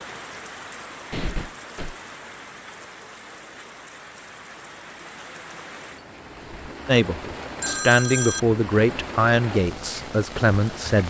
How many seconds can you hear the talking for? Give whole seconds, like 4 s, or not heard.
4 s.